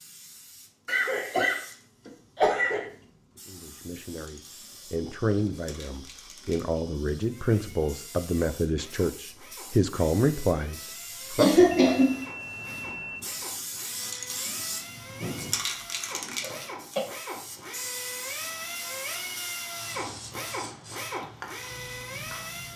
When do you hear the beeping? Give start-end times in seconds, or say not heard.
11.8-13.2.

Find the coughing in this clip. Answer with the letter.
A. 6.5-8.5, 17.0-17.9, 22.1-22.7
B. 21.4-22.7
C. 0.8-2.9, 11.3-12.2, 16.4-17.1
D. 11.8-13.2
C.